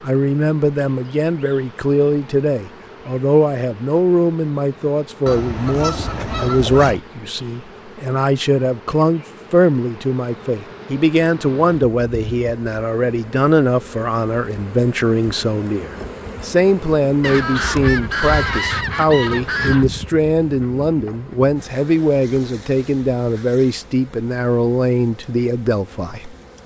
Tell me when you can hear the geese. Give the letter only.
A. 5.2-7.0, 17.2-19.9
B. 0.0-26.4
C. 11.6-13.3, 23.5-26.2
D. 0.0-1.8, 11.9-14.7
A.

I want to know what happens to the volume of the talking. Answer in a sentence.
The loudness of the talking stays about the same.